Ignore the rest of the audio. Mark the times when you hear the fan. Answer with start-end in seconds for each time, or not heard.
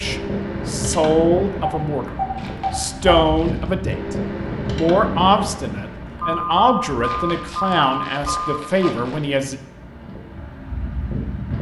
0.0-11.5.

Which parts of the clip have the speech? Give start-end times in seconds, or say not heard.
0.0-2.1, 2.7-9.6.